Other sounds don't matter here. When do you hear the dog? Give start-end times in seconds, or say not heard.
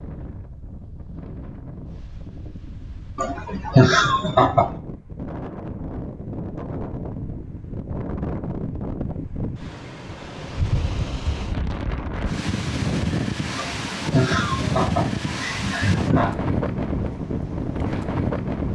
not heard.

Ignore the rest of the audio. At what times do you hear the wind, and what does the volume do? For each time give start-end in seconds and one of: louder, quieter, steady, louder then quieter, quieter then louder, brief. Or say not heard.
0.0-18.7 louder.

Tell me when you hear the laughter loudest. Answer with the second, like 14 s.
4 s.